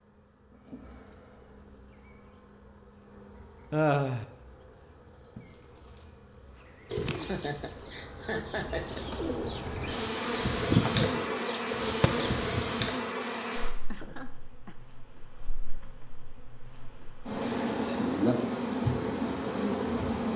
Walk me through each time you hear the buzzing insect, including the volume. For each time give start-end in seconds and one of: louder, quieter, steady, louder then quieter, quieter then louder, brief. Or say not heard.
0.0-20.3 louder.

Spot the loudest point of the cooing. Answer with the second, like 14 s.
11 s.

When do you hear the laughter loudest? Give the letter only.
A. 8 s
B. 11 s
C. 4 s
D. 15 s
C.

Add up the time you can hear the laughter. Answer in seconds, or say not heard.
3 s.